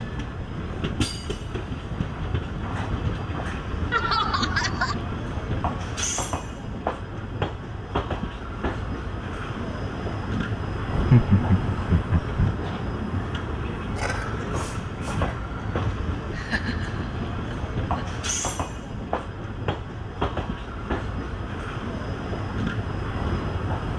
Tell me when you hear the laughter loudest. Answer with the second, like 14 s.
11 s.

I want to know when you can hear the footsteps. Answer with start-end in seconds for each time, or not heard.
not heard.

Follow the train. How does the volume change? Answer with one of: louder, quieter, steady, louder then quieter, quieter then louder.
steady.